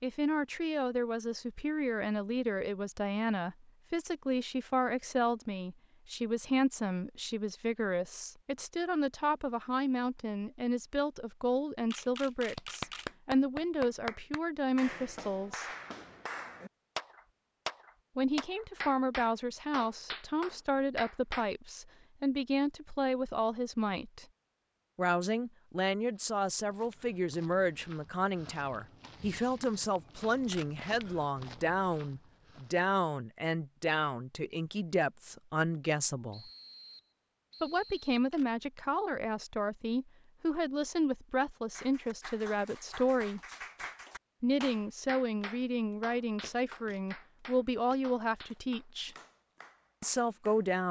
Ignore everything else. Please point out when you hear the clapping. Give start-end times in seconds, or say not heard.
12.6-21.5, 41.7-50.7.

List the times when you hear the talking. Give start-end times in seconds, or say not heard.
0.0-15.7, 18.1-24.2, 24.9-36.5, 37.6-43.4, 44.4-49.1, 50.0-50.8.